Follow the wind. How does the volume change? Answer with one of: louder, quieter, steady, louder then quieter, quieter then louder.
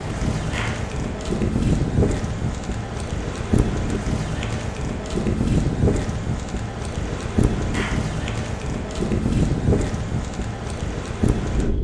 steady.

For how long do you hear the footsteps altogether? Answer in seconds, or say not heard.
not heard.